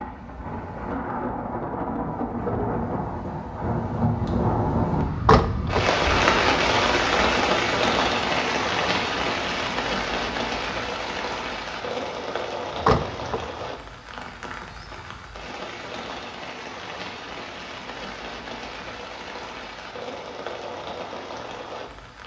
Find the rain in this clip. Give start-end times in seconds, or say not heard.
0.0-22.2.